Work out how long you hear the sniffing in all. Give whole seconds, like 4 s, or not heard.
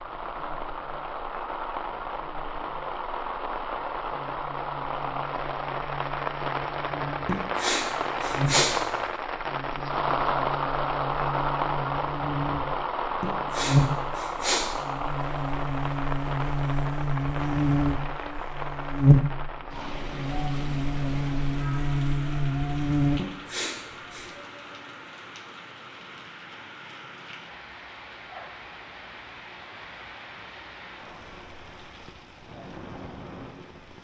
4 s.